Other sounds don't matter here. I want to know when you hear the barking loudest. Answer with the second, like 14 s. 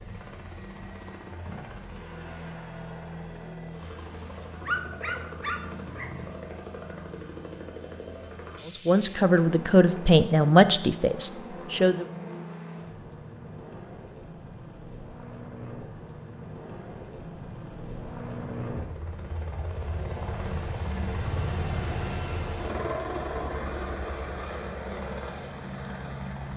5 s.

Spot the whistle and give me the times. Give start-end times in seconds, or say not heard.
not heard.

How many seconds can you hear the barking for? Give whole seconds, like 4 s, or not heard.
2 s.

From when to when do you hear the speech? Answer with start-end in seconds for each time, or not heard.
8.7-12.1.